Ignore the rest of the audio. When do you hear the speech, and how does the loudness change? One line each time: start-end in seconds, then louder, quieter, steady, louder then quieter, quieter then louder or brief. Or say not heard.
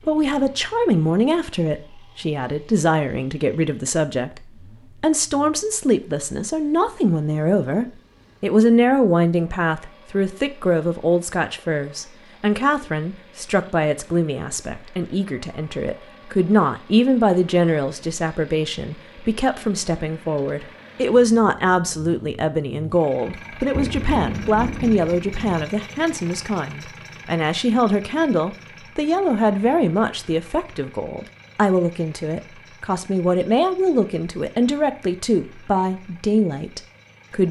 0.1-37.4 steady.